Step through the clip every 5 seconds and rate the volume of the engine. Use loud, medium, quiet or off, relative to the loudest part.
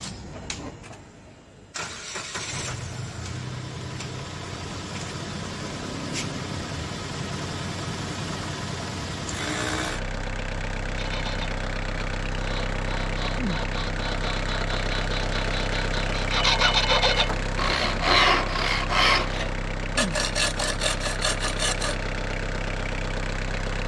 medium, loud, loud, loud, loud.